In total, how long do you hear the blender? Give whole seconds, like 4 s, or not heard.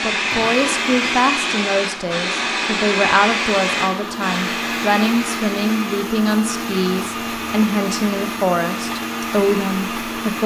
10 s.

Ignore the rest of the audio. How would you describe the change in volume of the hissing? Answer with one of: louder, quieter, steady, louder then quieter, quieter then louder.
quieter.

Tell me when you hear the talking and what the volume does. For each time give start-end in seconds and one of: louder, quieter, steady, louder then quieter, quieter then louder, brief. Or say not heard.
0.0-10.4 steady.